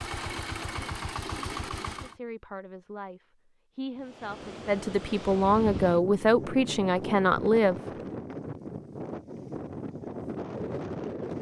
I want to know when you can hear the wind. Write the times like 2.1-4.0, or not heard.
4.0-11.3.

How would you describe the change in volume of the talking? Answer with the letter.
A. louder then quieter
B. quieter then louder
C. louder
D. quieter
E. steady
C.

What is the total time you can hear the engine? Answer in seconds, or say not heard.
2 s.